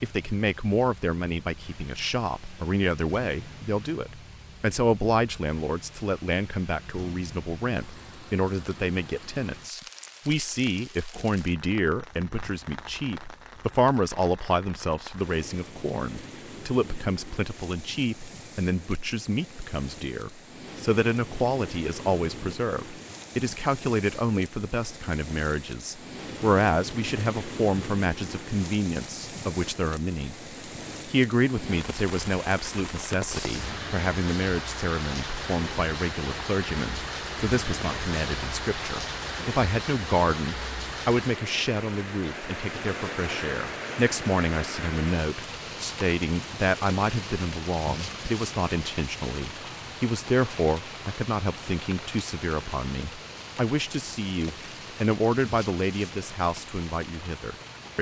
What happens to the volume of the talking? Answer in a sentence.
The volume of the talking stays about the same.